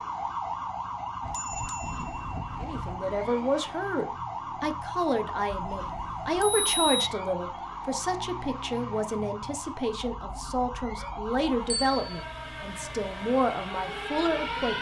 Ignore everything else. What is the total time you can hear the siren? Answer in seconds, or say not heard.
15 s.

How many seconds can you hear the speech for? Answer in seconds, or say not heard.
12 s.